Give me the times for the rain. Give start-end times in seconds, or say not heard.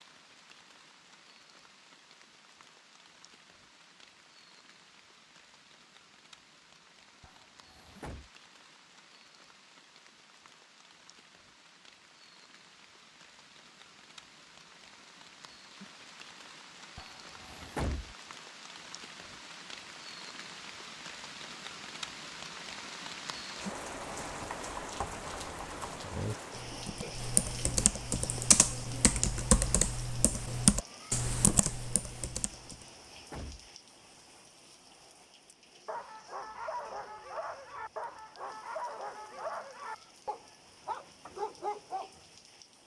0.0-42.8.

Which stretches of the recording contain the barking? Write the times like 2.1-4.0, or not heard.
35.9-42.2.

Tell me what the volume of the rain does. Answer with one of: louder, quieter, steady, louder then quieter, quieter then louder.
louder then quieter.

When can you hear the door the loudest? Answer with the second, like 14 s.
18 s.